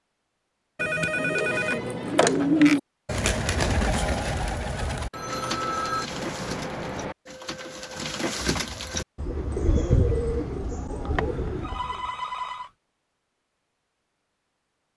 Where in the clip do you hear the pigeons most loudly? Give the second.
3 s.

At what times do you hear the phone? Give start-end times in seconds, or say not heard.
0.8-2.8, 5.1-7.2, 11.2-12.7.